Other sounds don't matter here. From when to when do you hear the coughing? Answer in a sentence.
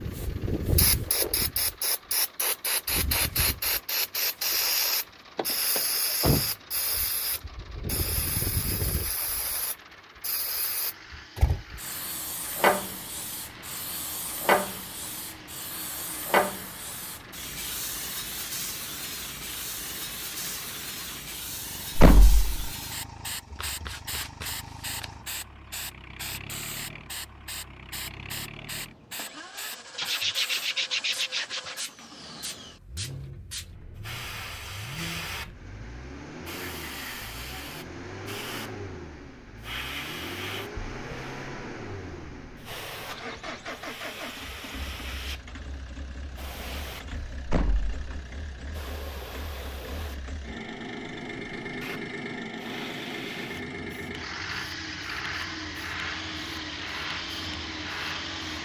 You can't hear the coughing here.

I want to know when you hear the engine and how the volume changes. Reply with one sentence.
You can hear the engine from 0.0 to 58.5 s, getting louder.